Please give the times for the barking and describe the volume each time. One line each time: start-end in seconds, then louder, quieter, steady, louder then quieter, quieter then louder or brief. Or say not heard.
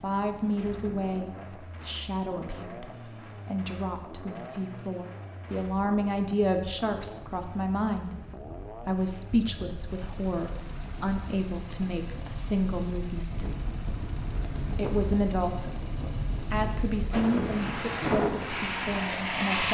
not heard.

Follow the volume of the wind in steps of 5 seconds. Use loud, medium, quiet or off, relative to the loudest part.
quiet, quiet, medium, loud.